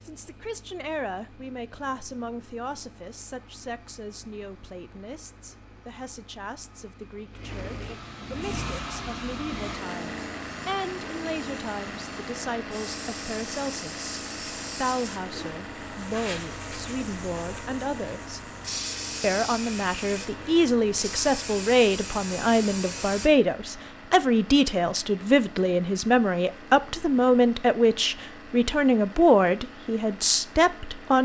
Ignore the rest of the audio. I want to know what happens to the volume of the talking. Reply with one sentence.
The volume of the talking goes up.